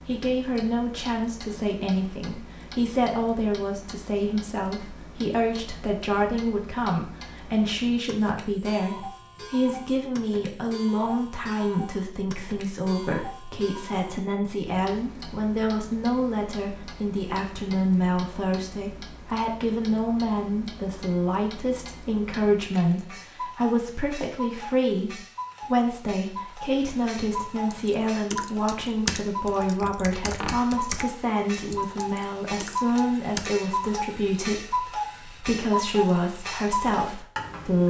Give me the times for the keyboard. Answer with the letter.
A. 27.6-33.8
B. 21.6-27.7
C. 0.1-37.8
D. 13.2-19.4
A.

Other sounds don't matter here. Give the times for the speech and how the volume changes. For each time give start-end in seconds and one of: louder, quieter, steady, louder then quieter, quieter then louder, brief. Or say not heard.
0.1-37.8 steady.